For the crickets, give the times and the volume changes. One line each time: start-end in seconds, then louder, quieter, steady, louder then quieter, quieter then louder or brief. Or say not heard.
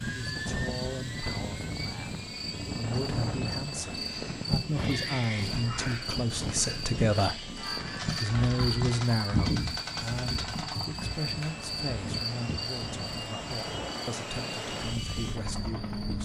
0.1-16.1 louder then quieter.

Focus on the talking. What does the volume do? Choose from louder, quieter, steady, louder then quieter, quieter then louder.
louder then quieter.